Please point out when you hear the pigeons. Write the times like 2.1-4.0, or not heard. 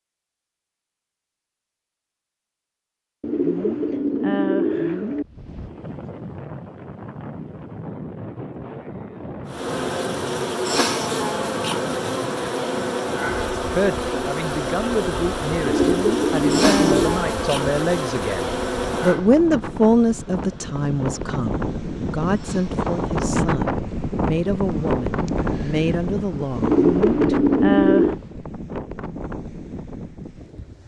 3.2-5.2, 15.6-17.2, 26.6-28.1.